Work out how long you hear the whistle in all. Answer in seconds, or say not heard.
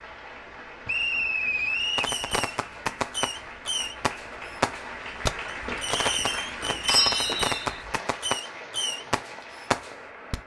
2 s.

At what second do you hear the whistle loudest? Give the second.
1 s.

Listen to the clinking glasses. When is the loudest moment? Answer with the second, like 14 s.
7 s.